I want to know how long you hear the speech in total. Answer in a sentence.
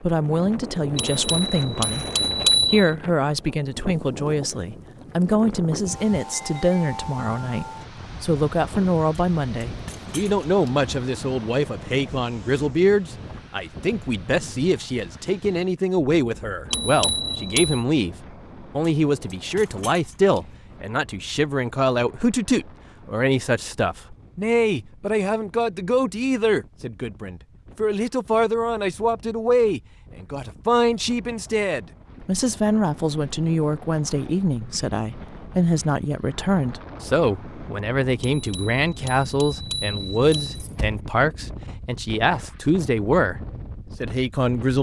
You can hear the speech for 44 seconds altogether.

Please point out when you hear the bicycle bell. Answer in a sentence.
You can hear the bicycle bell from 0.9 to 2.9 s, from 16.7 to 17.9 s and from 38.2 to 40.5 s.